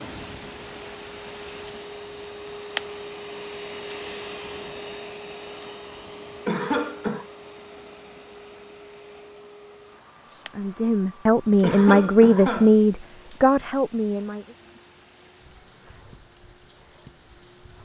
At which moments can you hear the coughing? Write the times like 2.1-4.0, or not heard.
6.5-7.2, 11.6-12.8.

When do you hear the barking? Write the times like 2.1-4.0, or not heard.
not heard.